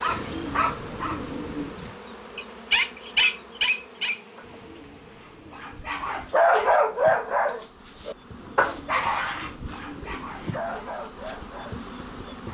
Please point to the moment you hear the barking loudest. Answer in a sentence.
The loudest moment of the barking is at 7 seconds.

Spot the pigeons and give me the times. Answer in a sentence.
You can hear the pigeons from 0.1 to 1.8 s, from 4.4 to 6.3 s and from 8.3 to 10.6 s.